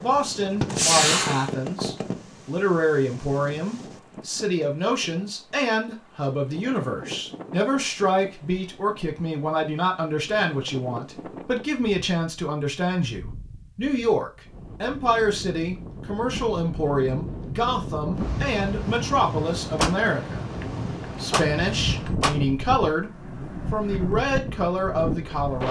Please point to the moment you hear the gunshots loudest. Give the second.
1 s.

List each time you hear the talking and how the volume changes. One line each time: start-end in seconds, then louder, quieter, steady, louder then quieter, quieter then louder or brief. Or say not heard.
0.0-25.6 steady.